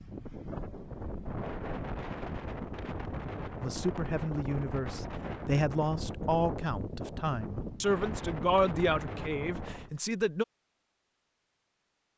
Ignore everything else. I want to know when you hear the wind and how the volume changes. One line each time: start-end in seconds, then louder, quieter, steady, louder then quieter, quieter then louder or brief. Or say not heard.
0.0-9.9 steady.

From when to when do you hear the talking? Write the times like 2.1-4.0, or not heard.
3.6-10.4.